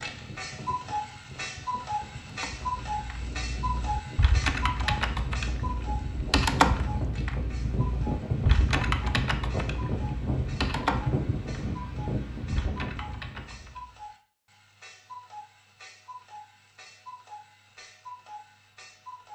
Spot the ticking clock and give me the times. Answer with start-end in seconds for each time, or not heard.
0.0-19.3.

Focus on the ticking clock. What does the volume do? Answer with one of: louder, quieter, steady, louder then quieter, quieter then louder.
quieter.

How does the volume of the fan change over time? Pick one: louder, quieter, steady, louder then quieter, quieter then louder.
louder.